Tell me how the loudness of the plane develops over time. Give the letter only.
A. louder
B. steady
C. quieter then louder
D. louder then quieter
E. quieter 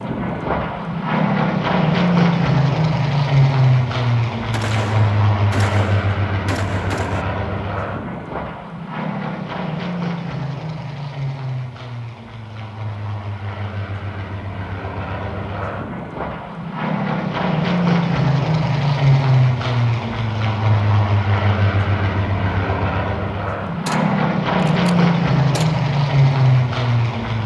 C.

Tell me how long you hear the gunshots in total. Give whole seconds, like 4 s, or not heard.
5 s.